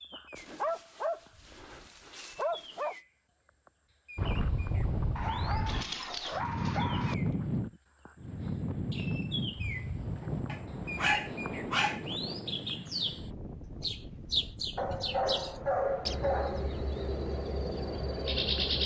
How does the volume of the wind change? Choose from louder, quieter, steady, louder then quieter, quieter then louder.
quieter.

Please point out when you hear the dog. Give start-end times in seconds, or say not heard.
0.3-3.0, 5.2-7.2, 10.5-12.0, 14.8-16.7.